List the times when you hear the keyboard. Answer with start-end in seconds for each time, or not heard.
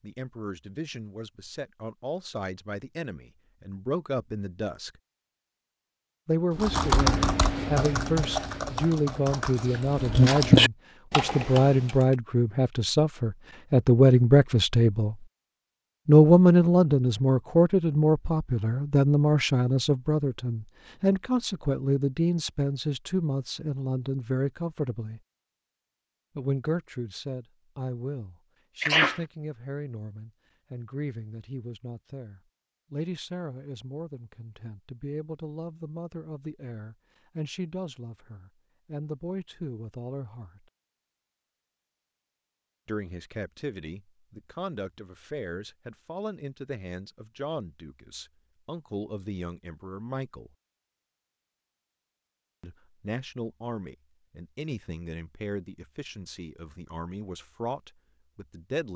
6.6-11.9.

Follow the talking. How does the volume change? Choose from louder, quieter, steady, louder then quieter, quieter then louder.
louder then quieter.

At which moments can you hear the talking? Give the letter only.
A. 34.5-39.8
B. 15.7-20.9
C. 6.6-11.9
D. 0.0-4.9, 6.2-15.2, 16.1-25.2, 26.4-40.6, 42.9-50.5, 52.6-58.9
D.